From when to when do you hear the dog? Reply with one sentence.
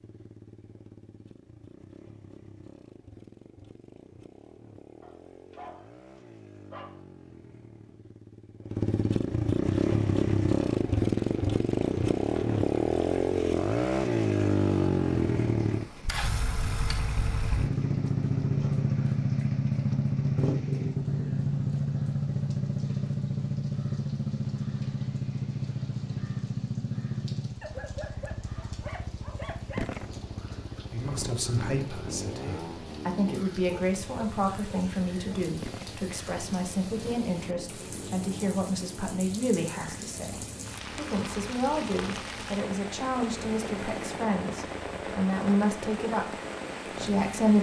The dog can be heard from 5.0 to 7.0 s, from 27.6 to 29.9 s and from 33.6 to 35.4 s.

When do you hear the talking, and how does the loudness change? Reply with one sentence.
The talking can be heard from 30.9 to 46.2 s, at a steady volume; and briefly from 46.9 to 47.5 s.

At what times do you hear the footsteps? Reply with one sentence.
The footsteps can't be heard in this clip.